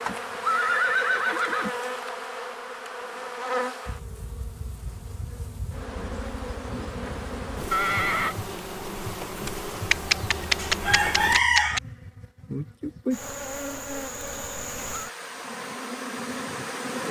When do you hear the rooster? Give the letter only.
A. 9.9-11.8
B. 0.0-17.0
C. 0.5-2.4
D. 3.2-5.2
A.